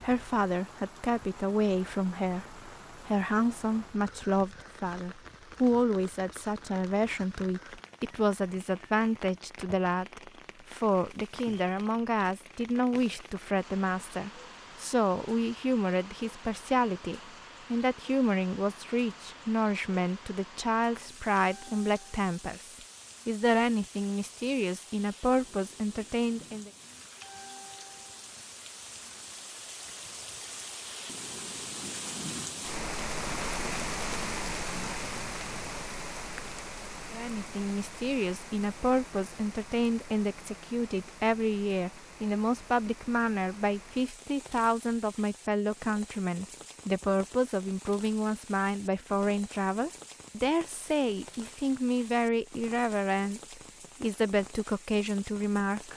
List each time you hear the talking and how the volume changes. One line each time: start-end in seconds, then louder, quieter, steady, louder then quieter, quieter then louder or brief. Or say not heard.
0.0-26.7 steady
37.1-55.9 steady.